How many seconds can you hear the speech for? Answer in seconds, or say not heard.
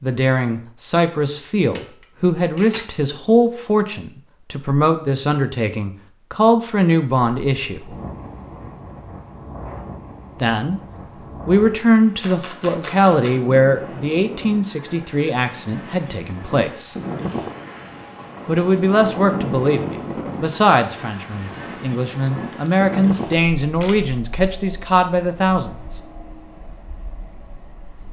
21 s.